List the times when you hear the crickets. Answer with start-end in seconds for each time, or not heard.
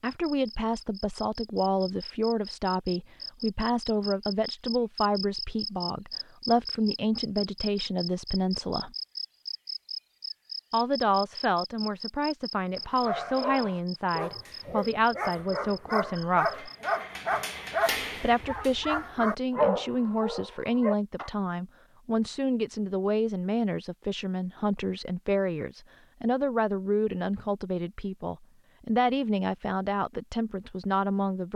0.1-16.8.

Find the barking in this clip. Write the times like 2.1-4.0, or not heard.
12.8-21.3.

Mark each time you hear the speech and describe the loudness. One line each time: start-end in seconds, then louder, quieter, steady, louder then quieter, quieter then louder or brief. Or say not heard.
0.0-8.9 steady
10.7-16.7 steady
18.2-31.5 steady.